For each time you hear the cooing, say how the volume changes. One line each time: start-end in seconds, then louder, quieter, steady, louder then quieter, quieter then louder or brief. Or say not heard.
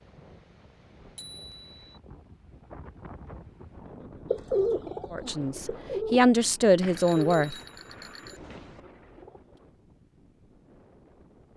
4.3-9.6 quieter.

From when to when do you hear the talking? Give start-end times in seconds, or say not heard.
5.1-7.5.